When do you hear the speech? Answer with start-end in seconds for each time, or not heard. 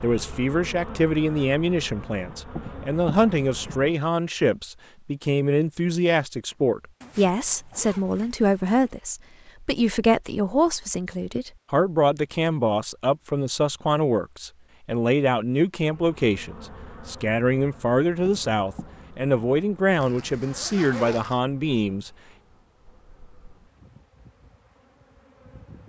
0.0-22.1.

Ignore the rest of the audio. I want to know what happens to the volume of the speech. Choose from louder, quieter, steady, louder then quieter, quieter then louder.
steady.